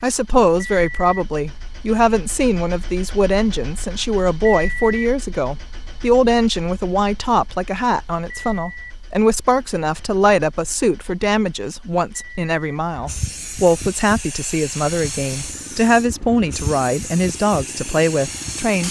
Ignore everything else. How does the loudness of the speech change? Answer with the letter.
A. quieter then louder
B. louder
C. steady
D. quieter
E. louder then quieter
C.